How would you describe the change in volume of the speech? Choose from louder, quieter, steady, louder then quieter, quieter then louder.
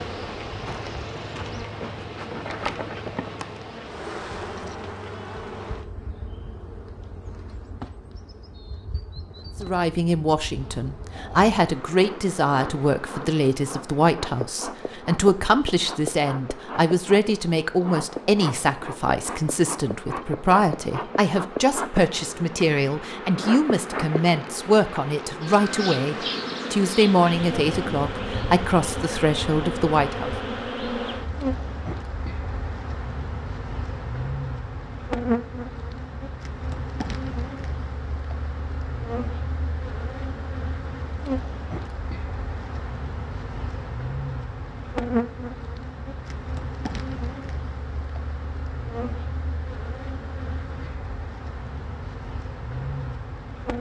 steady.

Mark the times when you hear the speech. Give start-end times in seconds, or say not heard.
9.6-30.3.